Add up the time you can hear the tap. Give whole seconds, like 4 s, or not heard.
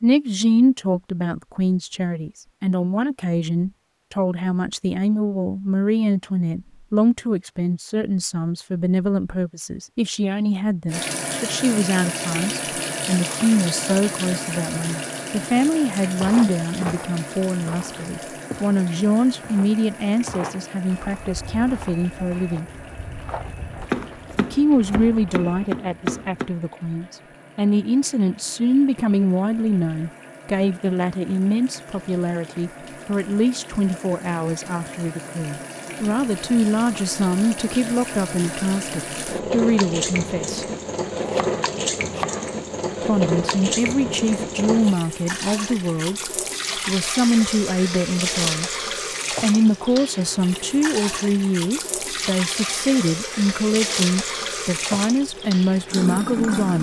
46 s.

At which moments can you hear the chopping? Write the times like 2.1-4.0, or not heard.
23.9-26.5, 41.1-42.5.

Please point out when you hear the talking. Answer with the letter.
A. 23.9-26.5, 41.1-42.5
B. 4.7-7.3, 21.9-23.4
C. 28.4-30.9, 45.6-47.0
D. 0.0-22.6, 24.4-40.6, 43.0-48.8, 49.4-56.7
D.